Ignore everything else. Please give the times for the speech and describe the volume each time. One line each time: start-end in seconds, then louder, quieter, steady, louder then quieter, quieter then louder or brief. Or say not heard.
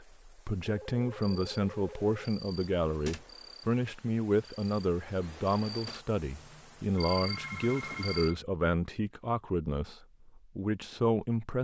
0.0-11.5 steady.